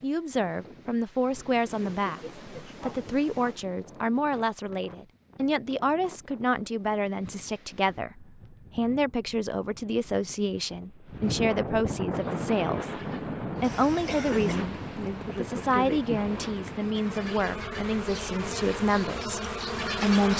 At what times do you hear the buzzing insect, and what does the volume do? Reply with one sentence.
You can hear the buzzing insect from 12.1 to 20.3 s, getting louder.